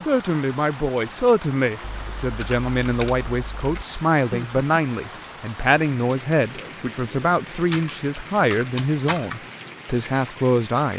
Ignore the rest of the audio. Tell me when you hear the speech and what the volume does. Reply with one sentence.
You can hear the speech from 0.0 to 10.9 s, at a steady volume.